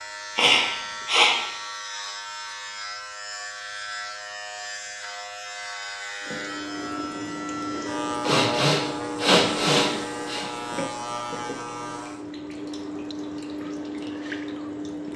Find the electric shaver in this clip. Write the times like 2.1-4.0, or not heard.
0.0-12.2.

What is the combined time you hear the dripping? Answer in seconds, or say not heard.
9 s.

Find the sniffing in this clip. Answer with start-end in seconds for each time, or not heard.
0.3-1.4, 8.2-10.5.